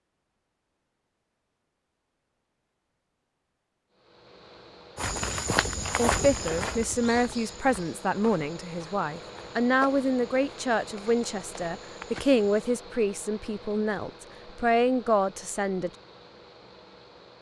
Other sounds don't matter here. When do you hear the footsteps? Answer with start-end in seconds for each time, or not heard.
5.0-12.6.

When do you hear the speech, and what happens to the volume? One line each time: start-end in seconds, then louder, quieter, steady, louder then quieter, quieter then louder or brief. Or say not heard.
6.0-15.9 steady.